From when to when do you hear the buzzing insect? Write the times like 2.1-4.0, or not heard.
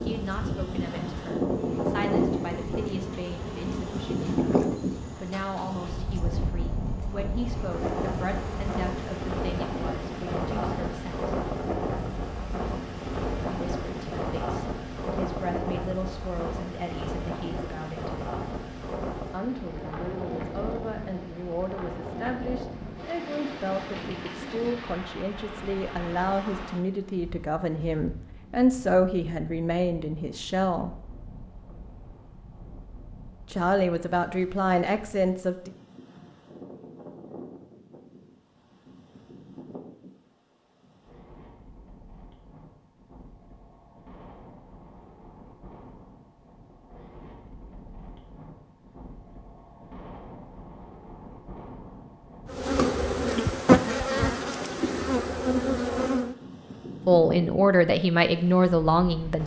0.0-9.2, 52.5-56.4.